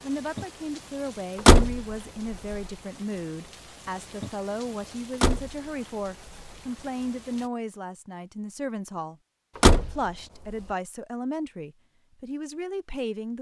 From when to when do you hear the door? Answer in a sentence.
You can hear the door from 1.4 to 2.5 s, from 5.2 to 6.5 s and from 9.6 to 10.0 s.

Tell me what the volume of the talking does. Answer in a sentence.
The loudness of the talking stays about the same.